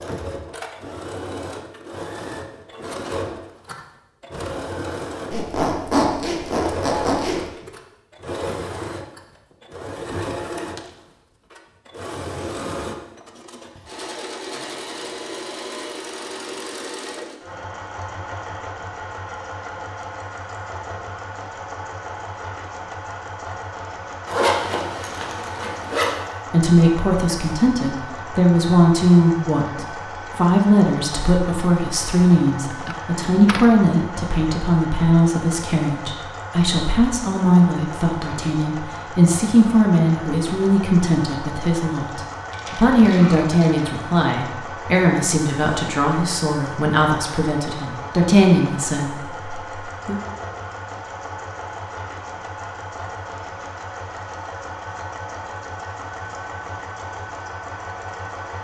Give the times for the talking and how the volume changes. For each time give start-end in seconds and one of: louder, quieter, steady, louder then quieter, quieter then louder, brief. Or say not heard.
26.5-50.2 steady.